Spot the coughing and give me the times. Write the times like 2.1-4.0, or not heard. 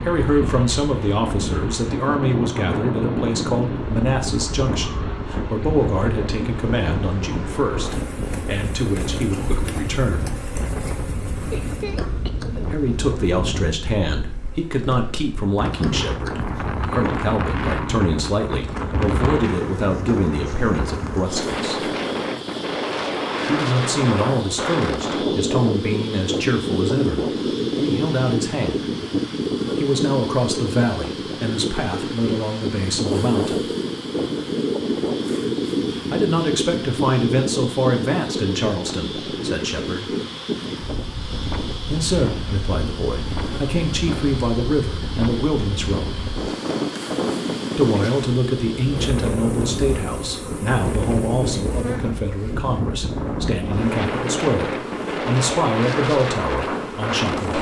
11.5-12.8.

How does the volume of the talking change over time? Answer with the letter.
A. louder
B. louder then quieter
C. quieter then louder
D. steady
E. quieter
D.